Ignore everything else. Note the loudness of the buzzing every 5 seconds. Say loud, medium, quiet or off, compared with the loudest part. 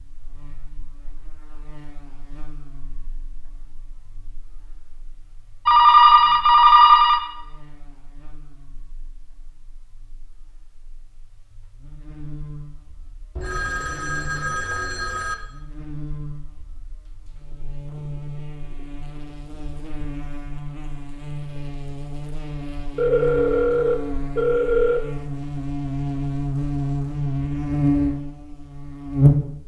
quiet, quiet, quiet, quiet, medium, loud.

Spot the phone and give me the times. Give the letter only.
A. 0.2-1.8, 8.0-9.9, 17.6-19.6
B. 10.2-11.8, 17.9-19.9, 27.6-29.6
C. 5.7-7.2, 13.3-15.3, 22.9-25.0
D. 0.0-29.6
C.